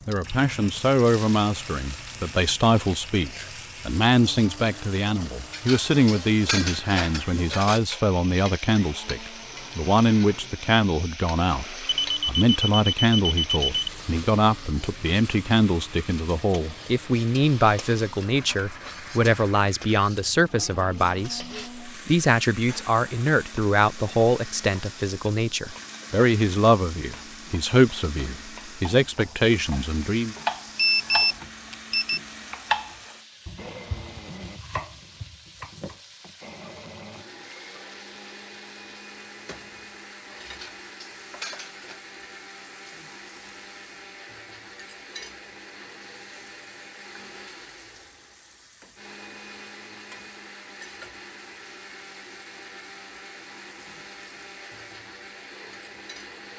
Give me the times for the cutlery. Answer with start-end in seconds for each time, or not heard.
5.5-7.8, 40.5-42.0.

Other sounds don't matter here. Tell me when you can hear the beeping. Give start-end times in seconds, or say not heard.
11.8-13.9, 30.8-32.2.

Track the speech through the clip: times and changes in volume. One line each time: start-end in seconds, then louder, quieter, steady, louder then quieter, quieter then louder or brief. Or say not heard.
0.1-30.4 steady.